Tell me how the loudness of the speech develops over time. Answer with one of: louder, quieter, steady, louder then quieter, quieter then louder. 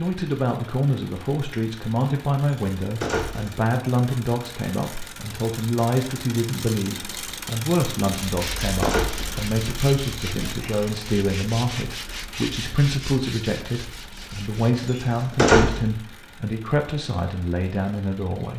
steady.